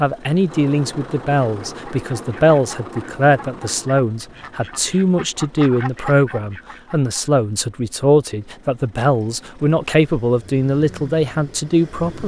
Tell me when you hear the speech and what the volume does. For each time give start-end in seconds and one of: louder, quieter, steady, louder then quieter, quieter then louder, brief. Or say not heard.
0.0-12.2 steady.